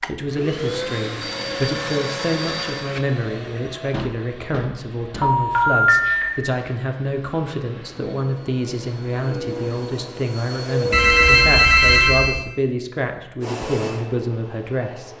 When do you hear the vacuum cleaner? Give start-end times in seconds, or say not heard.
0.0-11.7, 13.4-15.1.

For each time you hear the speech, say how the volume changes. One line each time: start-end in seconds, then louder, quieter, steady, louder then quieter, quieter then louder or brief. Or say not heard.
0.1-15.1 steady.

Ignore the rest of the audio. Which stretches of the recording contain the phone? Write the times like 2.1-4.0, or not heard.
1.2-2.9, 5.2-6.2, 10.9-12.4.